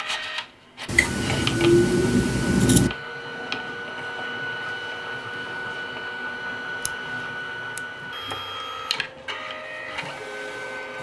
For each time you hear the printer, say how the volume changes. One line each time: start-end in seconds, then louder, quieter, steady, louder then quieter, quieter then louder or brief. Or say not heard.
0.0-10.9 steady.